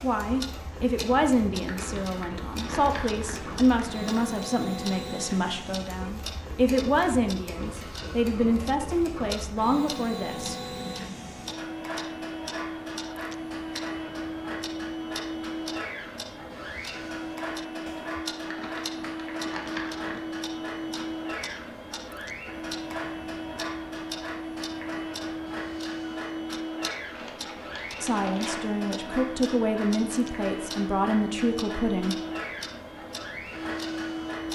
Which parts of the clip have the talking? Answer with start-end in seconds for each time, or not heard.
0.0-10.6, 28.0-32.1.